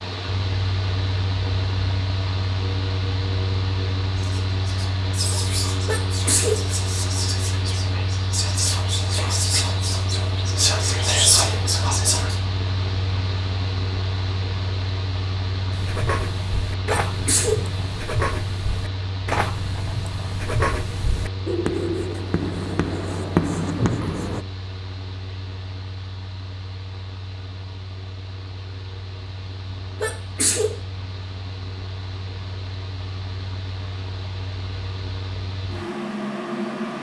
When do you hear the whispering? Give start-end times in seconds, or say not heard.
4.2-12.3.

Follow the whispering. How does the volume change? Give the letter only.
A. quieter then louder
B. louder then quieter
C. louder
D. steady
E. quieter
C.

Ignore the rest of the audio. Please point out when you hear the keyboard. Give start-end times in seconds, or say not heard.
not heard.